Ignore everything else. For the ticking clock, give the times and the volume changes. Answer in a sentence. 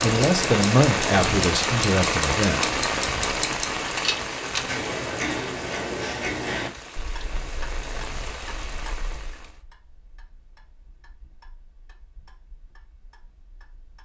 You can hear the ticking clock from 0.0 to 13.9 s, getting quieter.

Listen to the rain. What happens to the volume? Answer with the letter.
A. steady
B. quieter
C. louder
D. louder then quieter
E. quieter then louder
B.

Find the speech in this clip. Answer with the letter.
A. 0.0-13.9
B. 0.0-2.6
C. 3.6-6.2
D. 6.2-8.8
B.